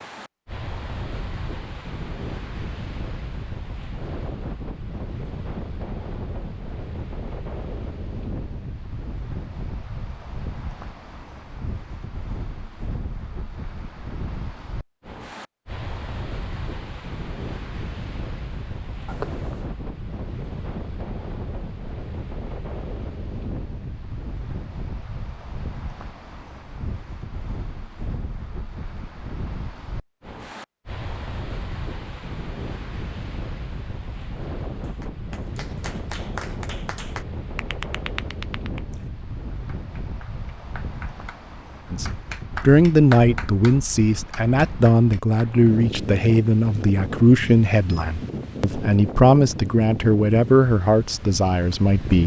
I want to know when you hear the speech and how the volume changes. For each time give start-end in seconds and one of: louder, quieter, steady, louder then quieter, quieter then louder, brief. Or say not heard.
41.9-52.2 steady.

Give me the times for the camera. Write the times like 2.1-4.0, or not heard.
19.1-19.7.